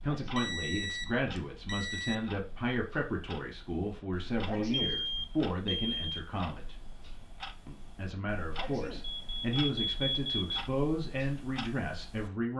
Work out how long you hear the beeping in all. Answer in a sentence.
The beeping can be heard for 5 seconds in total.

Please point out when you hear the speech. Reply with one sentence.
The speech can be heard from 0.0 to 6.8 s and from 7.7 to 12.5 s.